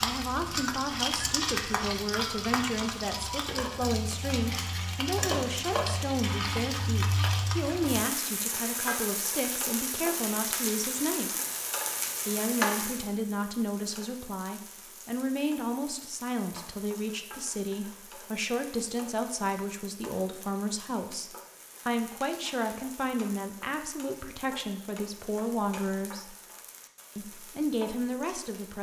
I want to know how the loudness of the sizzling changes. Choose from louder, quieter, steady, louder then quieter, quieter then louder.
quieter.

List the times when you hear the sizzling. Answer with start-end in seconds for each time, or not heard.
0.0-28.7.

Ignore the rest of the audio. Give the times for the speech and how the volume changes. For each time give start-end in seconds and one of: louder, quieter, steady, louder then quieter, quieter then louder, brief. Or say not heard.
0.0-11.3 steady
12.2-26.4 steady
27.1-28.7 brief.